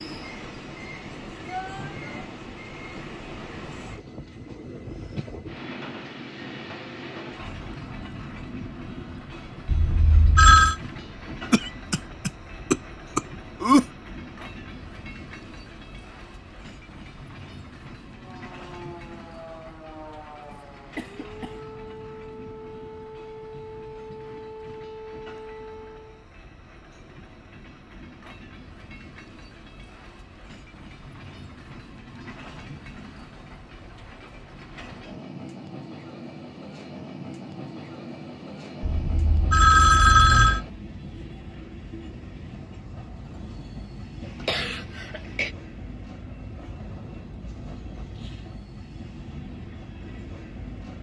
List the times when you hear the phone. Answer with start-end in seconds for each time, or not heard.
9.7-10.8, 38.8-40.6.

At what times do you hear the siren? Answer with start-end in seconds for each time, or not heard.
18.1-26.3.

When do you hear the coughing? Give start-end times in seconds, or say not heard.
11.5-13.8, 20.5-21.6, 44.2-45.5.